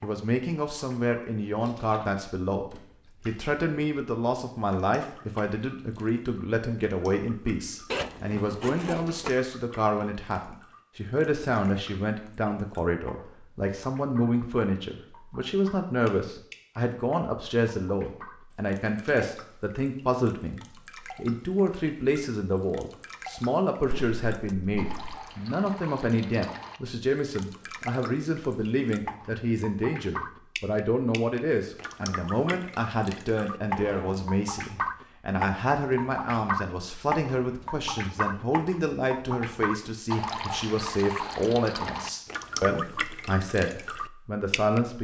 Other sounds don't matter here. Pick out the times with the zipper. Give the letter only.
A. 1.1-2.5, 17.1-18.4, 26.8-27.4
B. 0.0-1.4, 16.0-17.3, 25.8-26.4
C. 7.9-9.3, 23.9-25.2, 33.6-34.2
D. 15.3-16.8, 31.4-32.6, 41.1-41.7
C.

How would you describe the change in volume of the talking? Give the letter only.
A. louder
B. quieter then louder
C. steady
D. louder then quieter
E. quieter
C.